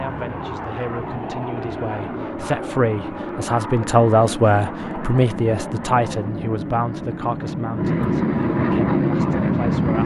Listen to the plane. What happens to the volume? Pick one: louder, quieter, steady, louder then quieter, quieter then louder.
louder.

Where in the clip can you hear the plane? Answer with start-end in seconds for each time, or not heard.
0.0-10.0.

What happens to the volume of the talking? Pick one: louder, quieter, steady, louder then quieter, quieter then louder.
louder then quieter.